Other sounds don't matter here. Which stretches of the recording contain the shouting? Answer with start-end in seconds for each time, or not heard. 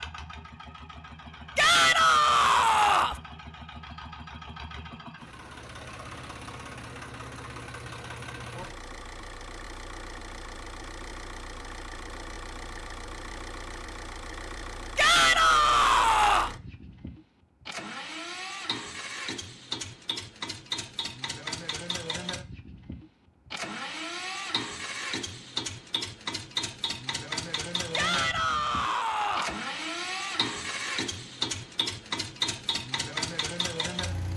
1.6-3.2, 14.9-16.5, 27.9-29.6.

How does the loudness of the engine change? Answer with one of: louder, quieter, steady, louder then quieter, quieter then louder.
louder.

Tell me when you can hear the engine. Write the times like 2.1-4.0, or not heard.
0.0-34.3.